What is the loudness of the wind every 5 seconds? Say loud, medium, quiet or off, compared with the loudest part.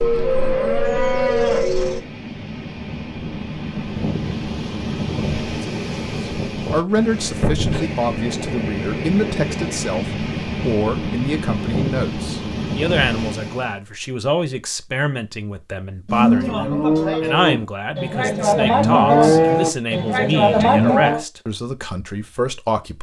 medium, loud, loud, off, off.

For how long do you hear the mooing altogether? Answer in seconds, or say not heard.
7 s.